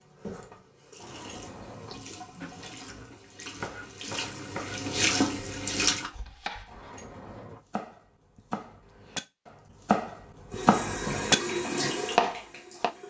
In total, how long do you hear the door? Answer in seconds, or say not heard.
3 s.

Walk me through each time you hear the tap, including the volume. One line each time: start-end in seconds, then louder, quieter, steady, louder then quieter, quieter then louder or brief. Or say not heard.
0.0-6.1 louder
10.5-13.0 brief.